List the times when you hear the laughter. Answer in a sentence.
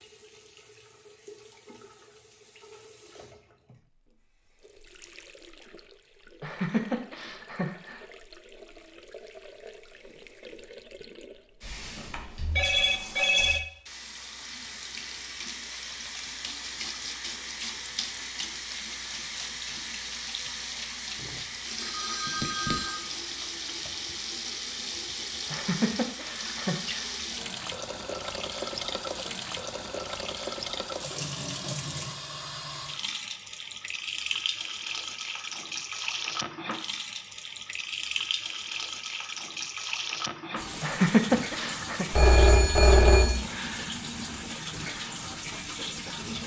You can hear the laughter from 6.4 to 8.1 s, from 25.5 to 27.1 s and from 40.8 to 42.0 s.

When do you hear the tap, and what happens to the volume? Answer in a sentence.
You can hear the tap from 0.0 to 46.4 s, getting louder.